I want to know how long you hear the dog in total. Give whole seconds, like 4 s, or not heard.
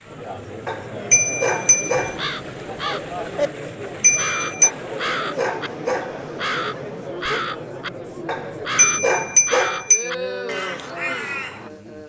5 s.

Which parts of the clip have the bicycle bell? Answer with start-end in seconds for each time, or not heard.
1.1-2.1, 4.0-4.7, 8.8-10.1.